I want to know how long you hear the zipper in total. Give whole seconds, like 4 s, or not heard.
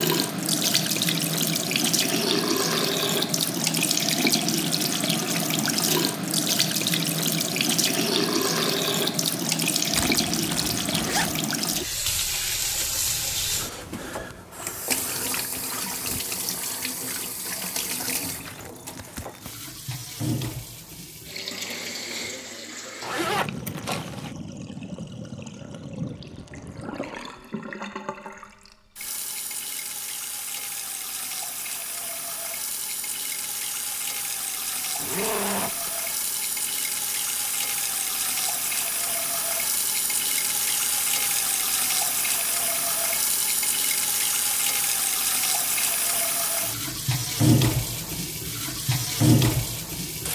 4 s.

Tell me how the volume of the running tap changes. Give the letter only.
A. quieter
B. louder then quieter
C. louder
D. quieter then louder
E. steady
D.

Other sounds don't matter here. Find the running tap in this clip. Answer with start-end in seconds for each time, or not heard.
0.0-50.3.